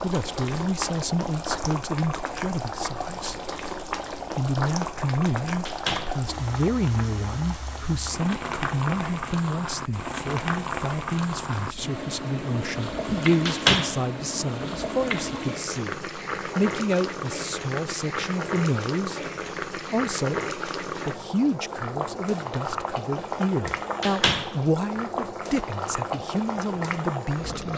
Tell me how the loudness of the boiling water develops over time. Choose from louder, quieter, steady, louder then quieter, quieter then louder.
steady.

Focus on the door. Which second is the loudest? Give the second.
14 s.